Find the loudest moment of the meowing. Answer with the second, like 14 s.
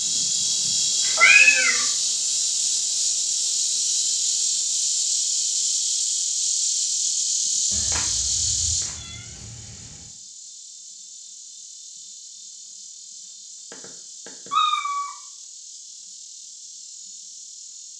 1 s.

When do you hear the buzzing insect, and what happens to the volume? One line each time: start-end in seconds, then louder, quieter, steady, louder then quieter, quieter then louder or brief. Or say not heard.
0.0-17.9 quieter.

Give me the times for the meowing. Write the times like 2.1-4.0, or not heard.
1.0-1.9, 7.7-9.9, 13.7-15.1.